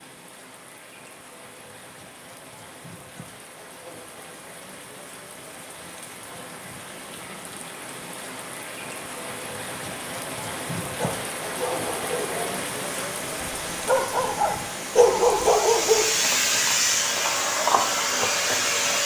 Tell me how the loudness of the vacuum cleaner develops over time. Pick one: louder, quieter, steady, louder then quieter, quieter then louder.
louder.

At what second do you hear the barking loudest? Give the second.
15 s.